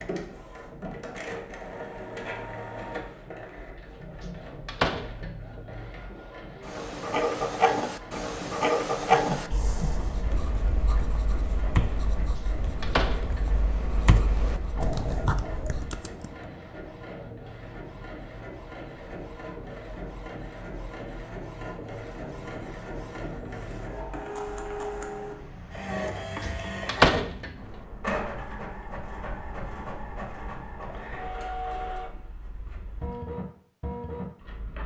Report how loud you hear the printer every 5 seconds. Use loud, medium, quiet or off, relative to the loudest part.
loud, medium, medium, medium, loud, loud, loud.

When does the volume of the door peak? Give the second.
27 s.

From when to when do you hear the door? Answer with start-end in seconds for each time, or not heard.
4.7-5.3, 12.3-13.4, 26.9-27.5.